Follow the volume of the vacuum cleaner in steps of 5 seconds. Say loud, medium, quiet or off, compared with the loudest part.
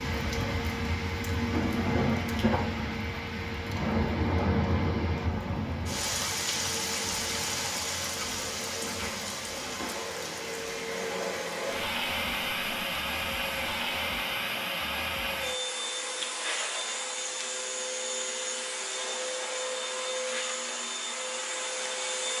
medium, medium, loud, loud, loud.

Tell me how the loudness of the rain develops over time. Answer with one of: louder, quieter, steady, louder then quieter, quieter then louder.
quieter.